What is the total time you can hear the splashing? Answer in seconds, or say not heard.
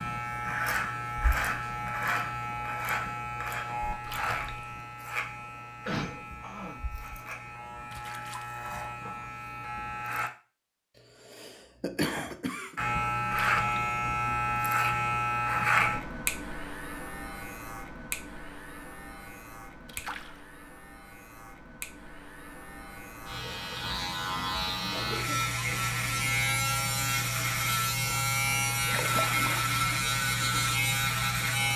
3 s.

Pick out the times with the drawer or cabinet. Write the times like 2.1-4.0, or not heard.
not heard.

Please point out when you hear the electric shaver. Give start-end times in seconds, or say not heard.
0.0-10.3, 12.8-31.7.